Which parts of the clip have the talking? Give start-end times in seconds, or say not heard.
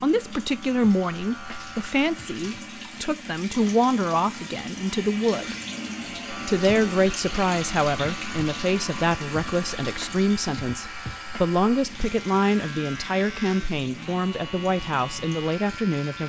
0.0-5.5, 6.5-16.2.